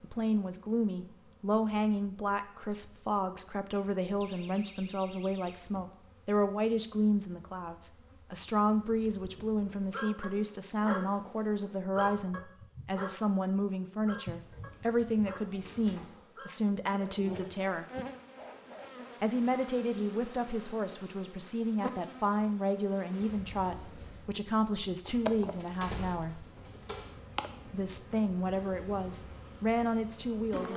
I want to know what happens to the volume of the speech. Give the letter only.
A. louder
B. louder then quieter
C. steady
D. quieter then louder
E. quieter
C.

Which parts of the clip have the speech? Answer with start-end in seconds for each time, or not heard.
0.0-17.9, 19.2-26.4, 27.6-30.7.